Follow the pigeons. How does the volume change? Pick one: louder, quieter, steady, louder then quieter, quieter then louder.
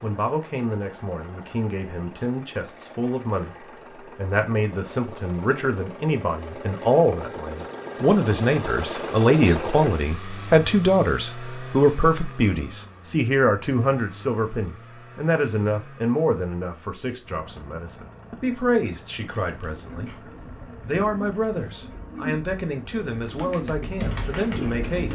louder.